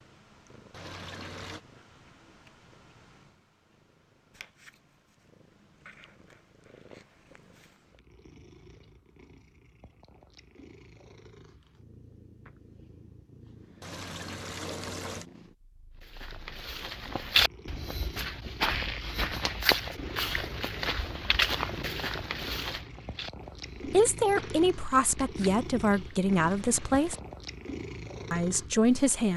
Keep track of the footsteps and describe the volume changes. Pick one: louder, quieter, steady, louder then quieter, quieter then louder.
quieter.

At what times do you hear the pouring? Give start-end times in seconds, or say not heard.
0.7-1.6, 13.8-15.2, 26.4-27.2.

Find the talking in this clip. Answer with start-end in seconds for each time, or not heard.
23.9-27.1, 28.3-29.3.